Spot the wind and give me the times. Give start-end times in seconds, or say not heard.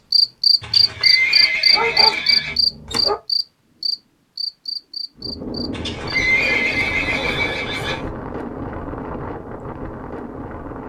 5.2-10.8.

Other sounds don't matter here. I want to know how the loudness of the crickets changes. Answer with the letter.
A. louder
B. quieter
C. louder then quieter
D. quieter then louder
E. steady
B.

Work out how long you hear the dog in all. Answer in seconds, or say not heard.
3 s.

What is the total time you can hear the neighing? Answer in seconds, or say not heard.
4 s.